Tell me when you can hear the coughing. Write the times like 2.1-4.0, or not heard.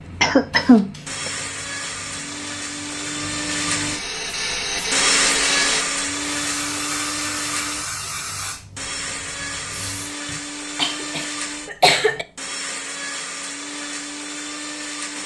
0.2-1.3, 10.2-12.2.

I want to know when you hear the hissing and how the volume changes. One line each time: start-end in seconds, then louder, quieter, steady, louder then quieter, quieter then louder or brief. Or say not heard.
0.0-10.2 louder then quieter.